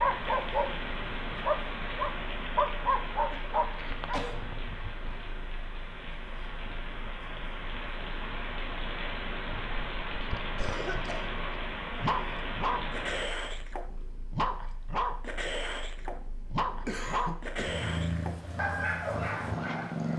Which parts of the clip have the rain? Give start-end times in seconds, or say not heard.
0.0-13.3.